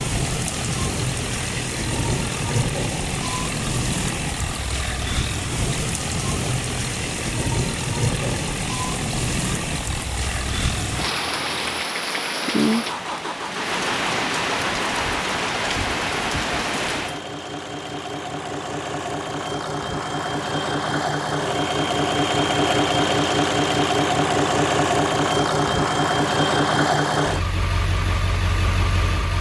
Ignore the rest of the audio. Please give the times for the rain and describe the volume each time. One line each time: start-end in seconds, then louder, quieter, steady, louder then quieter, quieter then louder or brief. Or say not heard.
0.0-17.2 steady.